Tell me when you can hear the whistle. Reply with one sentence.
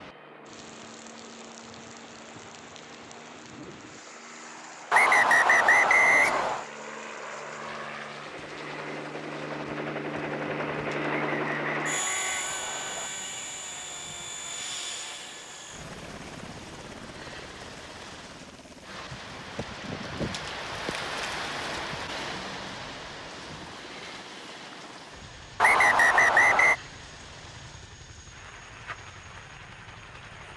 The whistle can be heard from 4.9 to 6.7 s, from 11.1 to 13.1 s and from 25.6 to 26.8 s.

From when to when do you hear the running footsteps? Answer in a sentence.
The running footsteps can't be heard in this clip.